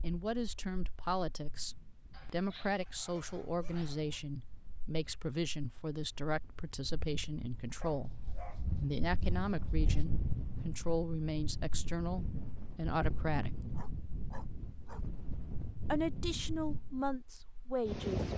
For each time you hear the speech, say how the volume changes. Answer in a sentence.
You can hear the speech from 0.0 to 13.7 s, at a steady volume; and briefly from 15.9 to 18.3 s.